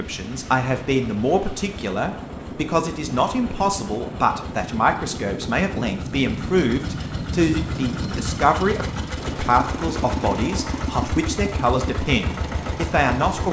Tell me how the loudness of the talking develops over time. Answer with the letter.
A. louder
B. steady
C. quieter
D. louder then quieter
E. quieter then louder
B.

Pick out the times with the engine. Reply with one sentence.
The engine can be heard from 0.0 to 13.4 s.